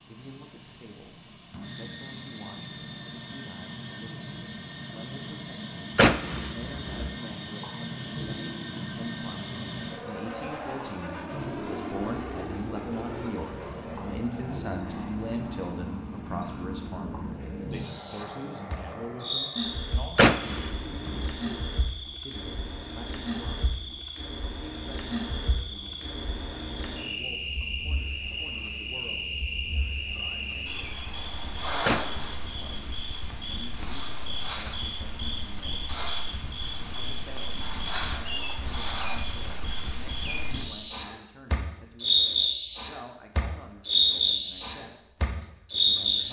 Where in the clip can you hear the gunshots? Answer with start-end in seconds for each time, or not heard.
6.0-7.1, 20.1-21.3, 31.9-33.0.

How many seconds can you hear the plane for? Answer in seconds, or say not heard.
20 s.